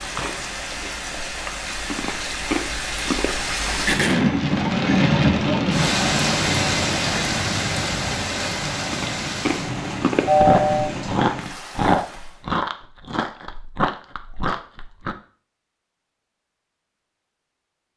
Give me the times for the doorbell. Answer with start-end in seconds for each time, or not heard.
10.2-10.9.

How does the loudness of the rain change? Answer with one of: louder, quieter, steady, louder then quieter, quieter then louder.
louder then quieter.